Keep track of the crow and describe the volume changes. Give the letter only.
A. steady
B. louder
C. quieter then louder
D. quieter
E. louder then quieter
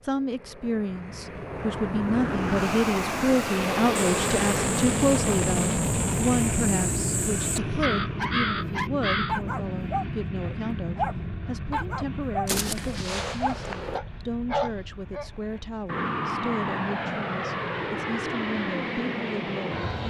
B.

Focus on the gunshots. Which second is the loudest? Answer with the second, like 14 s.
13 s.